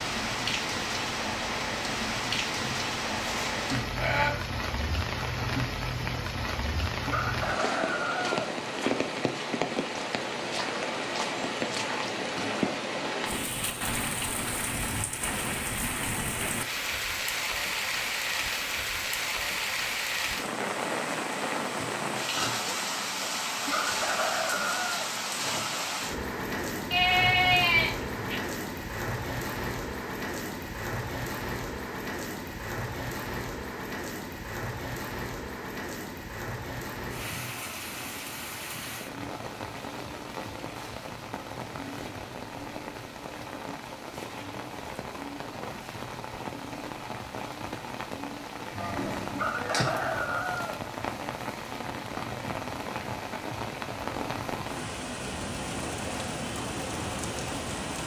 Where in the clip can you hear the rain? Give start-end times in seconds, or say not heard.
0.0-58.0.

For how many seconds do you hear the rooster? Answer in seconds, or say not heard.
4 s.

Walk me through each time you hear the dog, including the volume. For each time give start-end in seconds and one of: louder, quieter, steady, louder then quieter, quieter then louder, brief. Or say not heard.
not heard.